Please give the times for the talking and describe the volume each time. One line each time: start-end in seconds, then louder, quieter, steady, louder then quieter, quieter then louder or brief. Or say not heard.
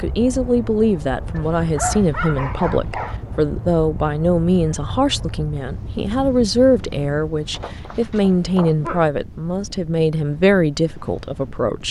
0.0-11.8 steady.